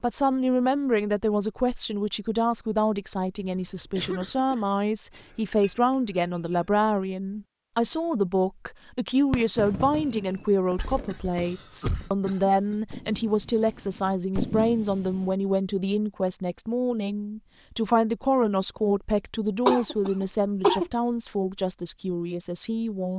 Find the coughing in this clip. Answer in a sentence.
You can hear the coughing from 3.4 to 4.7 s, from 10.8 to 12.8 s and from 19.6 to 20.9 s.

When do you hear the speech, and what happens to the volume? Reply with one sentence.
You can hear the speech from 0.0 to 23.1 s, at a steady volume.